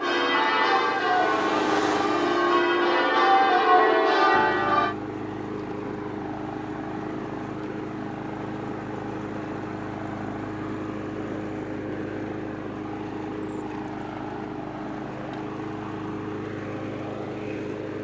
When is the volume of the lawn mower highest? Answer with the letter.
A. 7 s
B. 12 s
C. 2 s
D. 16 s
C.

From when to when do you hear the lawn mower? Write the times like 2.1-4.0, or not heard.
0.0-17.9.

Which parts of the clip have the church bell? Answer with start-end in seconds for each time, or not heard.
0.0-5.0.